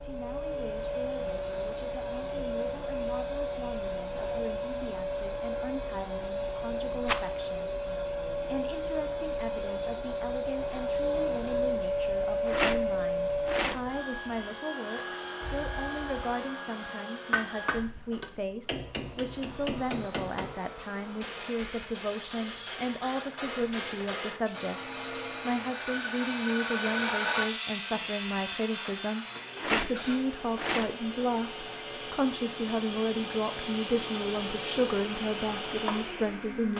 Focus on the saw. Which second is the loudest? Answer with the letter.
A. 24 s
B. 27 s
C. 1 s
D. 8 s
B.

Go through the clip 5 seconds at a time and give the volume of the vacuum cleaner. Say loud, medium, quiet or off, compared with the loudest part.
loud, loud, loud, medium, quiet, quiet, medium, medium.